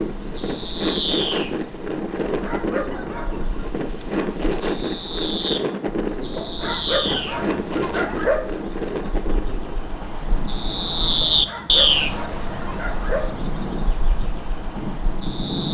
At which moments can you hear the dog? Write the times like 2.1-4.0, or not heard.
2.4-3.5, 6.3-8.4, 11.2-13.4.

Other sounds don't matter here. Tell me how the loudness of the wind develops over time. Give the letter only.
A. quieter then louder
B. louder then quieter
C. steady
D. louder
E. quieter
E.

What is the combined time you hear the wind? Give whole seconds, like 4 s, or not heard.
16 s.